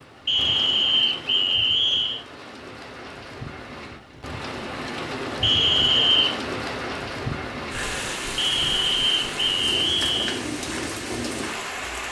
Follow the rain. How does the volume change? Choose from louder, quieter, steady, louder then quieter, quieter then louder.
louder.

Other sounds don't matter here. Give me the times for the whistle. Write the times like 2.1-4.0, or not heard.
0.2-2.2, 5.4-6.4, 8.3-10.4.